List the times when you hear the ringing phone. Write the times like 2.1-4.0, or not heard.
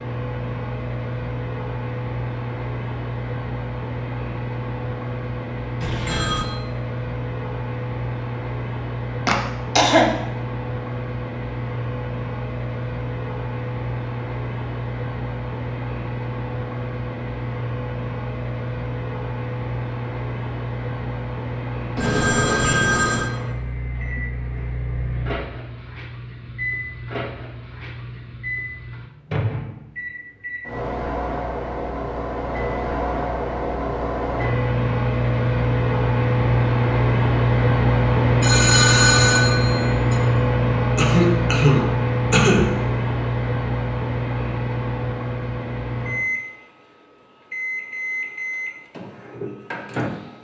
5.8-6.5, 21.9-23.2, 38.4-40.2.